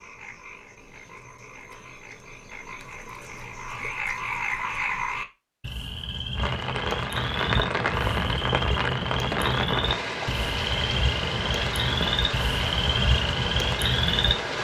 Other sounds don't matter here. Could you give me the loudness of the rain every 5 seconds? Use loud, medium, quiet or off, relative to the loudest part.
off, loud, loud.